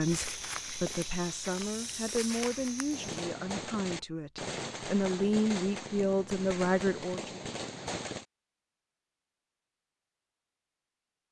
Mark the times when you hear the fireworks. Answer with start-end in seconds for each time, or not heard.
2.9-8.2.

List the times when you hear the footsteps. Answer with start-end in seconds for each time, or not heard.
0.0-3.2.